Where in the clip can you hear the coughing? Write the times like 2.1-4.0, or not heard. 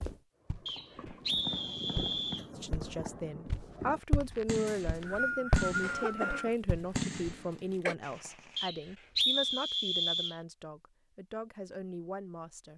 5.8-8.0.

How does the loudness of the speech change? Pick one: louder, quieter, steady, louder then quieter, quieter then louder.
quieter.